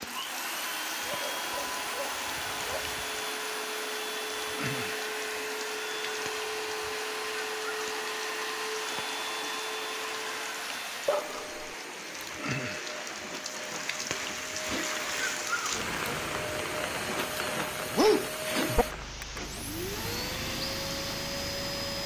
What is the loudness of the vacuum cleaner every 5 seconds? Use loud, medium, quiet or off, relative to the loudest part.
loud, loud, medium, loud, loud.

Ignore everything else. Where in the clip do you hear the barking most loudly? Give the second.
18 s.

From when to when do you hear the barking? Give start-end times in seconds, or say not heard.
1.0-3.2, 11.1-11.7, 17.9-18.9.